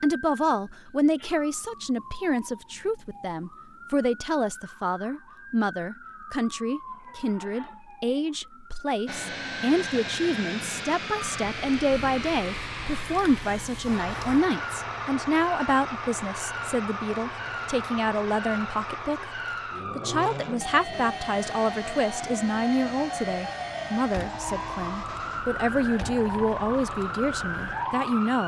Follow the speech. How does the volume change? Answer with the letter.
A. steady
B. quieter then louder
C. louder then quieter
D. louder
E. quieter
A.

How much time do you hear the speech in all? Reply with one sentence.
You can hear the speech for 28 seconds altogether.